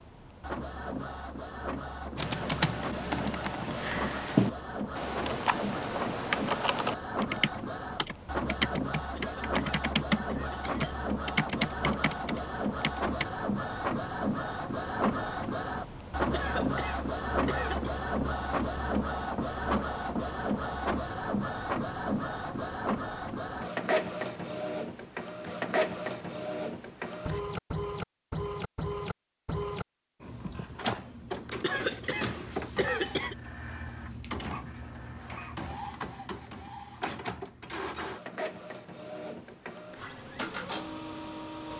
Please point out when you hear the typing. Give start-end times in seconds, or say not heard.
2.1-13.2.